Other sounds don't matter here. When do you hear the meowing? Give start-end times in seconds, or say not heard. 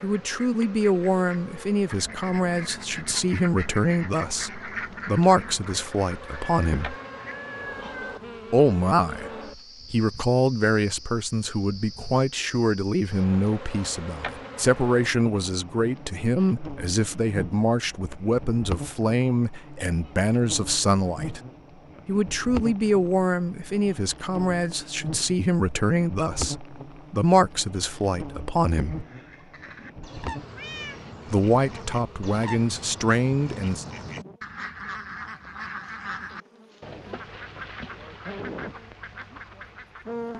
6.2-8.2, 30.6-31.0.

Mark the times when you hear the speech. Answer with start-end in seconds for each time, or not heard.
0.0-7.0, 8.5-9.3, 9.9-21.4, 22.1-29.1, 31.3-33.9.